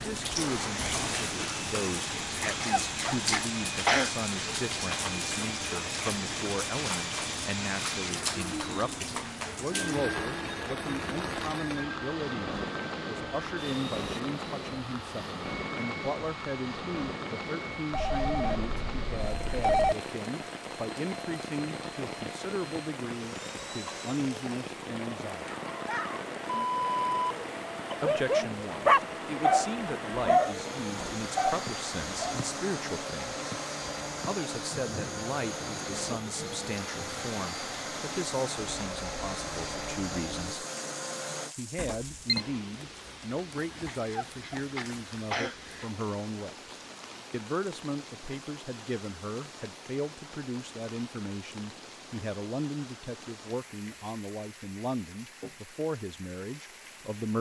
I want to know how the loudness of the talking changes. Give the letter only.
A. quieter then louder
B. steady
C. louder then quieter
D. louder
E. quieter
B.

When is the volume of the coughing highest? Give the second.
4 s.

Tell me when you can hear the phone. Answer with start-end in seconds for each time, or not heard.
17.9-19.9, 41.8-42.5.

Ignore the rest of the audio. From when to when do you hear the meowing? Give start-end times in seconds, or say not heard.
not heard.